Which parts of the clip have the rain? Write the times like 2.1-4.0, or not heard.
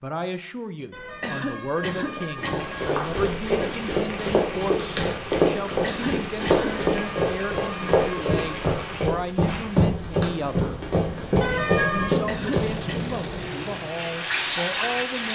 2.5-15.3.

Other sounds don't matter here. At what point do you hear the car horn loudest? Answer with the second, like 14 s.
12 s.